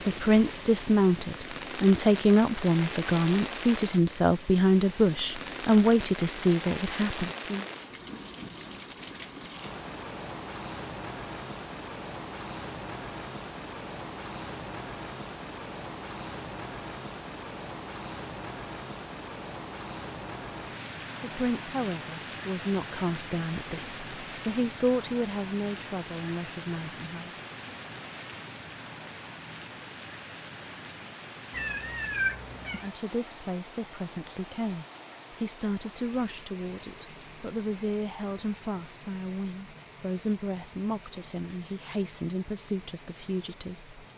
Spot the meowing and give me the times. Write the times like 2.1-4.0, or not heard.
31.5-32.9.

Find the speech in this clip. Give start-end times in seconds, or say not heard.
0.1-7.7, 21.2-27.4, 32.8-44.0.